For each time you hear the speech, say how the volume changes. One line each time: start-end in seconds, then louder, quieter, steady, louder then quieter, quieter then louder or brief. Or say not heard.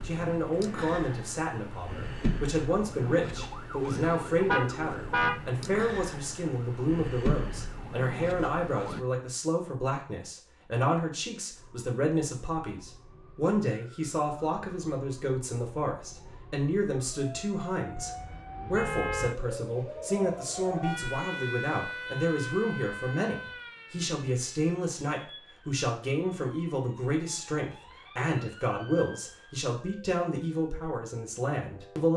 0.0-32.1 steady.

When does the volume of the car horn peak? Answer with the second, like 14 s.
5 s.